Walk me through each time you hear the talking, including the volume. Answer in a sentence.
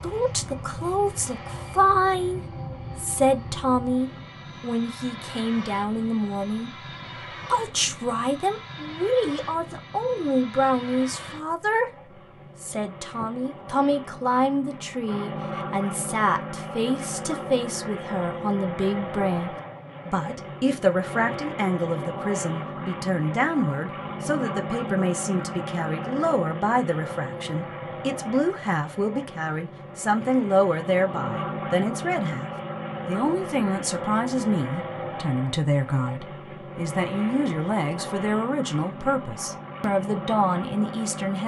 The talking can be heard from 0.0 to 41.4 s, at a steady volume.